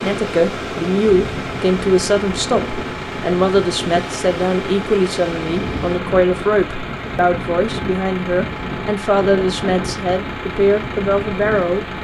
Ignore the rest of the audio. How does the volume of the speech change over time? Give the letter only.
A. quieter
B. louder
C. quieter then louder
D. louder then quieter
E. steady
E.